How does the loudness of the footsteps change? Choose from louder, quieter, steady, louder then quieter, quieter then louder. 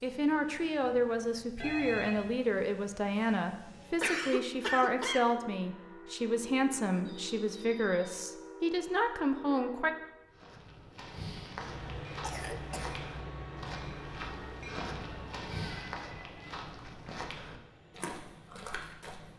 steady.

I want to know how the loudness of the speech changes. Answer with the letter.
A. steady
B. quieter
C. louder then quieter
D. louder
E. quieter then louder
A.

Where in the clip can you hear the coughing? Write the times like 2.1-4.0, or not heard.
4.0-5.3, 11.6-12.9.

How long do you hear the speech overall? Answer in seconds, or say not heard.
10 s.